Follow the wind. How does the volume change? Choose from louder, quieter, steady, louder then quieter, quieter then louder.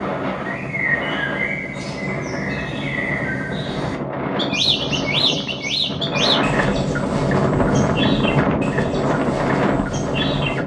louder.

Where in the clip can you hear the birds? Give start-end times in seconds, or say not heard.
0.0-10.6.